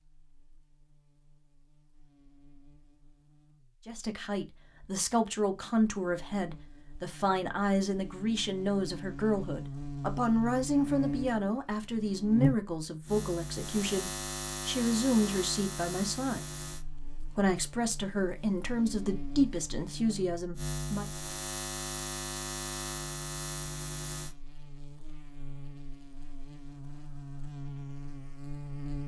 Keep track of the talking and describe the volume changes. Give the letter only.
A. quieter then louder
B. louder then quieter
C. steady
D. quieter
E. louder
C.